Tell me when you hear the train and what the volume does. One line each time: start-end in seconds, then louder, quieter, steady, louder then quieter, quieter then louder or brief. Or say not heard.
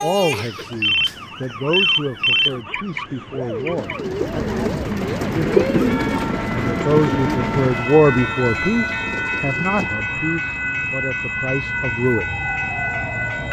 0.0-13.4 louder.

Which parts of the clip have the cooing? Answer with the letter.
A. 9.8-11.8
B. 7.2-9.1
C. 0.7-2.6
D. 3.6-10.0
D.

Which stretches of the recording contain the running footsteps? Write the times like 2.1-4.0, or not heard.
not heard.